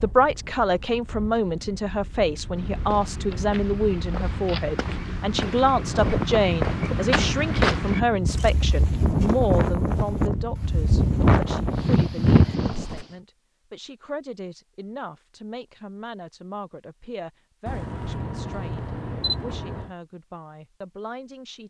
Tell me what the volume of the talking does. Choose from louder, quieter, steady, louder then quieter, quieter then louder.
quieter.